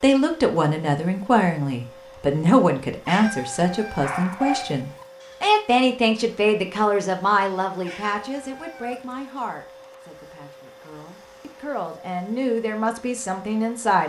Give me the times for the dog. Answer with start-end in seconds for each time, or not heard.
4.0-5.5.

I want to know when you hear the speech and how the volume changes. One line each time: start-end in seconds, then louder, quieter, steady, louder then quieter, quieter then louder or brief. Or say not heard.
0.0-14.0 quieter then louder.